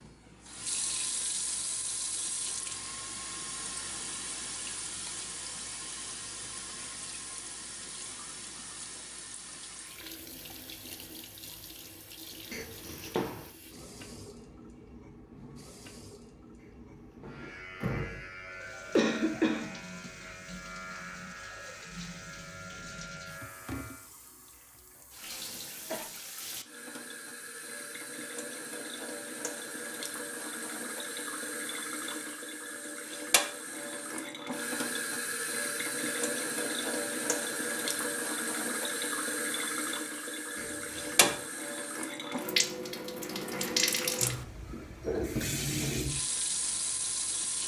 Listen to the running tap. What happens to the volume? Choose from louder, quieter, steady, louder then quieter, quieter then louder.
quieter then louder.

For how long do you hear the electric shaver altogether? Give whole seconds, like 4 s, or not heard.
7 s.